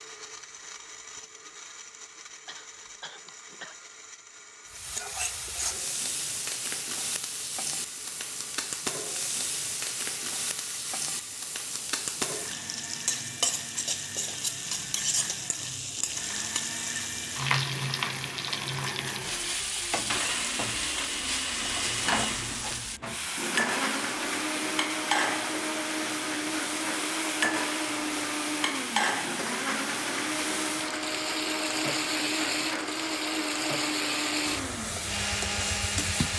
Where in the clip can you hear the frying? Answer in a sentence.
The frying can be heard from 4.7 to 36.3 s.